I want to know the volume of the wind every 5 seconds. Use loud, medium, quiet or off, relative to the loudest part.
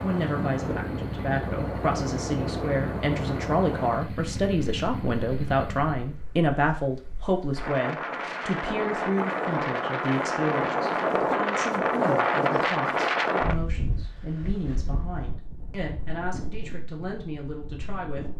medium, medium, loud, quiet.